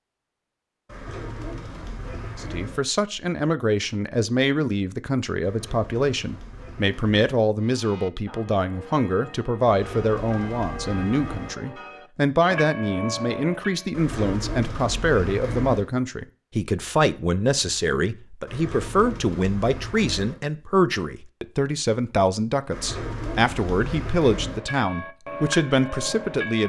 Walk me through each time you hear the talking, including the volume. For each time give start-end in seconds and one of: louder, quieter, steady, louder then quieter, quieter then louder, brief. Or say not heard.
2.4-26.6 steady.